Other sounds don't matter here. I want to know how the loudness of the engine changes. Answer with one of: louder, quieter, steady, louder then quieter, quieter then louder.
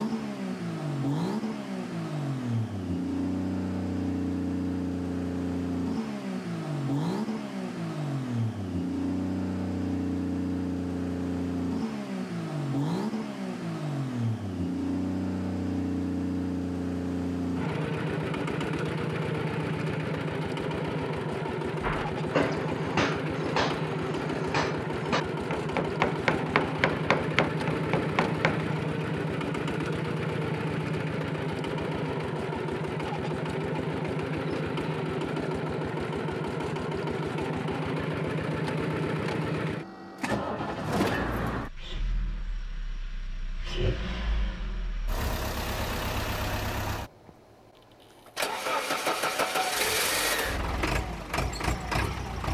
steady.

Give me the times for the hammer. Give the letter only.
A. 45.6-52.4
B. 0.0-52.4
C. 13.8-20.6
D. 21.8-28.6
D.